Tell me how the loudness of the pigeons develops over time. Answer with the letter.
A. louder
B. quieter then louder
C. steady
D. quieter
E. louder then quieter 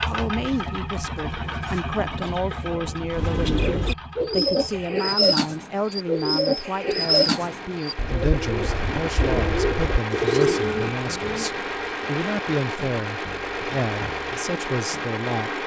A.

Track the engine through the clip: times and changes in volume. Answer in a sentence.
The engine can be heard from 0.0 to 15.6 s, getting quieter then louder.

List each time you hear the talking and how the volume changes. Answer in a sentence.
You can hear the talking from 0.0 to 15.6 s, at a steady volume.